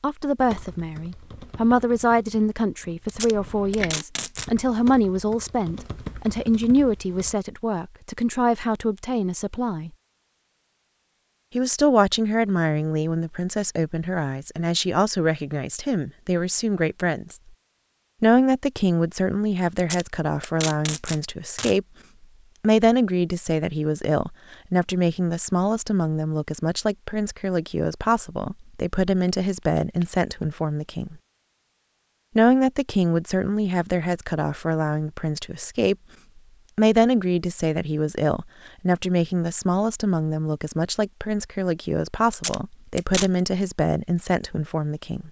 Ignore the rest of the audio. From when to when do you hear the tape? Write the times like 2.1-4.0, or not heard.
3.0-4.5, 19.8-21.8, 42.3-43.3.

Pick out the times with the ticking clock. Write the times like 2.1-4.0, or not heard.
not heard.